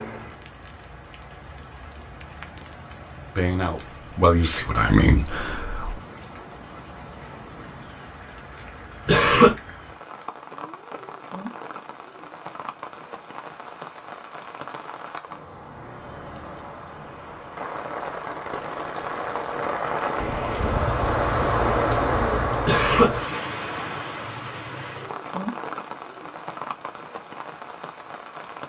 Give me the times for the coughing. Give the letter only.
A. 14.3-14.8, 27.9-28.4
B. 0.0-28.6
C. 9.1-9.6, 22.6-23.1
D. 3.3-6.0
C.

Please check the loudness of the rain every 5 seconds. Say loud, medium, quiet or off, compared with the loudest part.
quiet, quiet, quiet, medium, loud, medium.